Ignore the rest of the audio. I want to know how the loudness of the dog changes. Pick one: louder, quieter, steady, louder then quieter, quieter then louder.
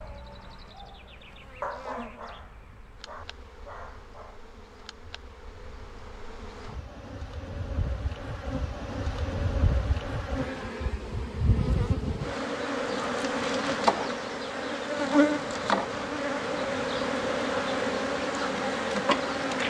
louder then quieter.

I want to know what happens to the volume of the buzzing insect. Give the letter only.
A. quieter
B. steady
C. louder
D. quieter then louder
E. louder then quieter
C.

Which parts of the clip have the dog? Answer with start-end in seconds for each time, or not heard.
0.0-4.4.